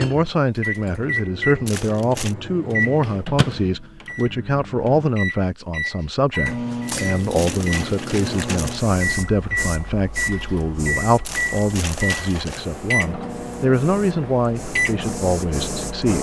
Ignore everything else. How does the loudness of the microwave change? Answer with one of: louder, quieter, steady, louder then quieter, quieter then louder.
steady.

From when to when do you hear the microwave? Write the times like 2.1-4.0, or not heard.
0.0-16.1.